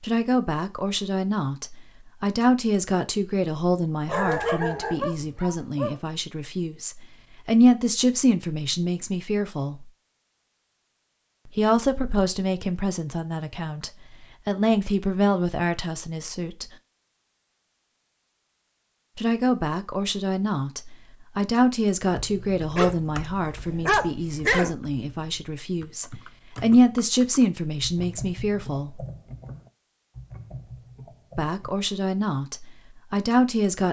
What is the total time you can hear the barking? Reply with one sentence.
The barking can be heard for 4 seconds in total.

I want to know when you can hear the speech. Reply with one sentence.
You can hear the speech from 0.0 to 9.8 s, from 11.6 to 16.6 s, from 19.1 to 29.0 s and from 31.4 to 33.8 s.